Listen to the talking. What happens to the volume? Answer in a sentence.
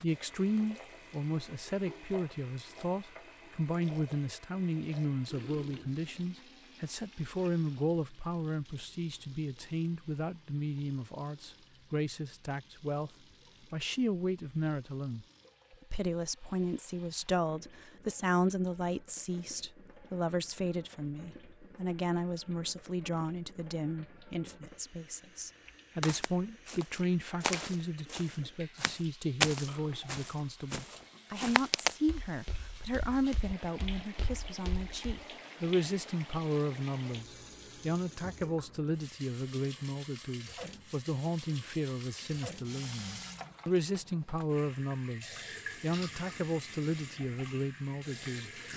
The loudness of the talking stays about the same.